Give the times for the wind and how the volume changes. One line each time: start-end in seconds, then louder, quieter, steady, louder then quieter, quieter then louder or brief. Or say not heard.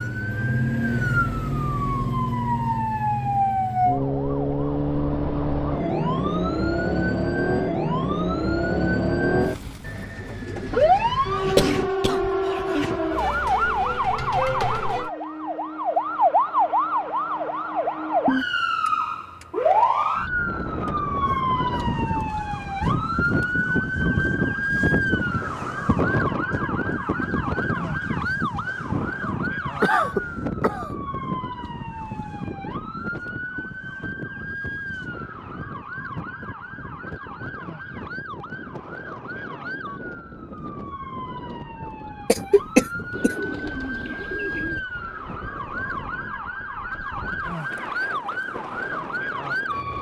20.3-49.9 quieter.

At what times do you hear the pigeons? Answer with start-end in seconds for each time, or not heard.
9.8-11.8, 43.1-44.9.